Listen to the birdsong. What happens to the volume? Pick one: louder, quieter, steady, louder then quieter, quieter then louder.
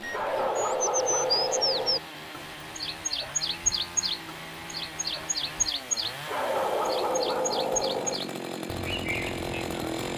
quieter.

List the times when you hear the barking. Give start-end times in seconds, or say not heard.
0.1-2.0, 6.2-8.2.